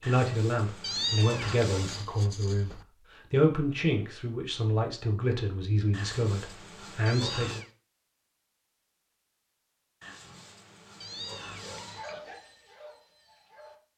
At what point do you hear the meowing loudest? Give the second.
1 s.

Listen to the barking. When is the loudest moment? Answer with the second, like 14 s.
12 s.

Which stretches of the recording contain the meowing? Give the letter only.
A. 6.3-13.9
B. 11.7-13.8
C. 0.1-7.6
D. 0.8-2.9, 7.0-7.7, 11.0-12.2
D.